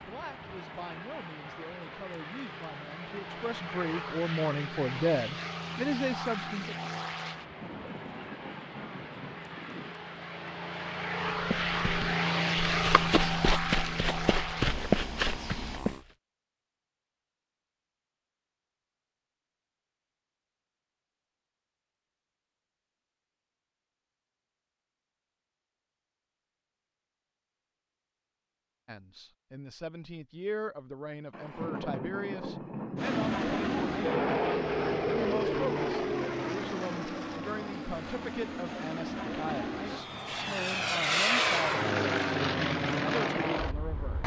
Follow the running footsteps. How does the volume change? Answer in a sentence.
The volume of the running footsteps goes up.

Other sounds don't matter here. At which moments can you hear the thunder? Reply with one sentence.
The thunder can be heard from 7.4 to 9.9 s and from 31.3 to 34.5 s.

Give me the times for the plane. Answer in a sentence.
You can hear the plane from 0.0 to 16.1 s and from 33.0 to 44.2 s.